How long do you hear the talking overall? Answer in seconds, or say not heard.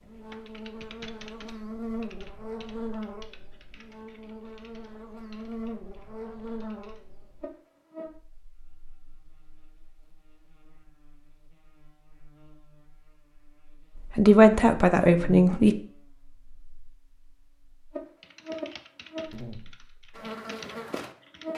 2 s.